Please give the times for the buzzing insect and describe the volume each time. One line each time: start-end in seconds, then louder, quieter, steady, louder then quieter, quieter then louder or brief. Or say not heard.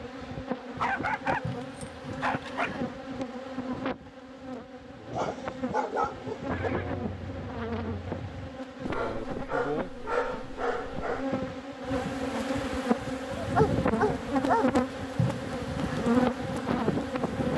0.0-17.5 louder.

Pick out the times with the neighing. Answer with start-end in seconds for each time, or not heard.
1.4-2.9, 6.5-8.5, 15.2-16.1.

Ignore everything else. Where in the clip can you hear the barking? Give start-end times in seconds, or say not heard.
0.8-2.7, 5.1-6.7, 8.8-11.2, 13.3-14.8.